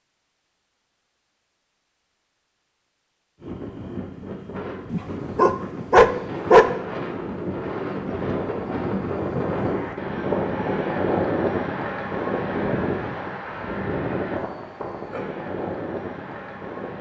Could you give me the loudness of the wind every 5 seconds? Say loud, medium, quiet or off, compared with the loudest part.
medium, loud, loud, medium.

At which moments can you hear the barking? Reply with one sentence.
You can hear the barking from 4.9 to 6.7 s.